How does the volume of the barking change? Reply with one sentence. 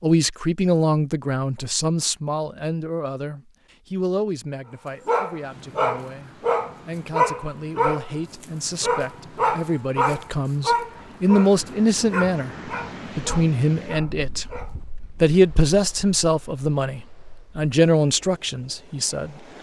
The loudness of the barking goes down.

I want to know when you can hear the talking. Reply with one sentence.
You can hear the talking from 0.0 to 14.4 s and from 15.2 to 19.4 s.